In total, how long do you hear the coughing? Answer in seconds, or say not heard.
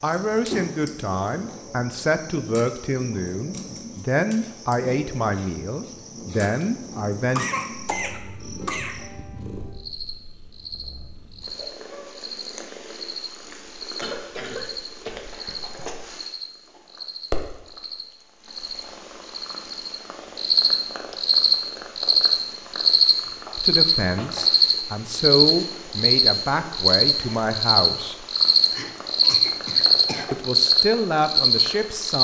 5 s.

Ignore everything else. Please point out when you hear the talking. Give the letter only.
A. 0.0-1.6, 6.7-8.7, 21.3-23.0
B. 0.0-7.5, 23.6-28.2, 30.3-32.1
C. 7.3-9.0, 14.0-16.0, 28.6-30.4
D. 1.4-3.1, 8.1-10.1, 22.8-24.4
B.